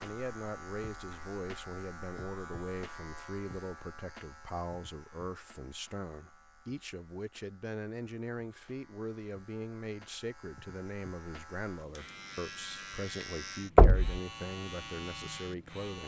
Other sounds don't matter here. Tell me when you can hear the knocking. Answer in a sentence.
The knocking can be heard from 13.8 to 14.2 s.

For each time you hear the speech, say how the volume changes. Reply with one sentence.
The speech can be heard from 0.0 to 16.0 s, at a steady volume.